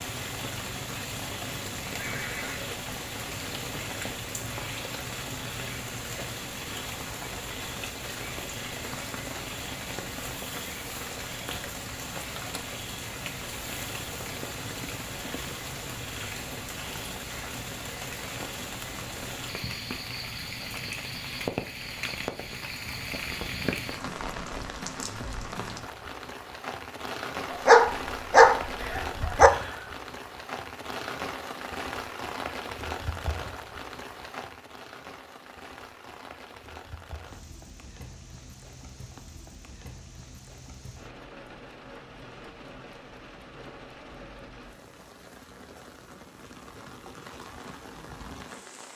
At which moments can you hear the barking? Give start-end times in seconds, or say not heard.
27.5-29.5.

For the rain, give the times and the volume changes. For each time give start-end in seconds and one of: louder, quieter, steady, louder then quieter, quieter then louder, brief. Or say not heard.
0.0-48.9 quieter.